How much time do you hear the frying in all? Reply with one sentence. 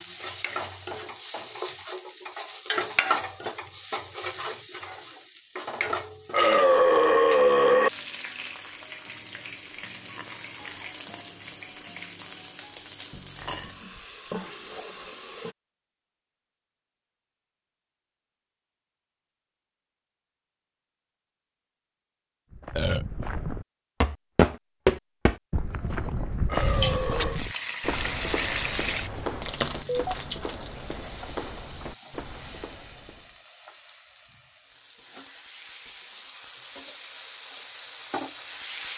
You can hear the frying for 28 seconds altogether.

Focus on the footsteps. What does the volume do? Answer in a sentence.
The volume of the footsteps goes down.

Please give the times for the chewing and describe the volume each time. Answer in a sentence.
You can't hear the chewing here.